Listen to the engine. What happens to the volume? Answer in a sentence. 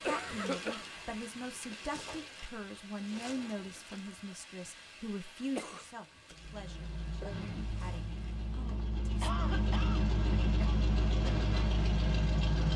The volume of the engine goes up.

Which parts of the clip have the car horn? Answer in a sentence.
You can't hear the car horn here.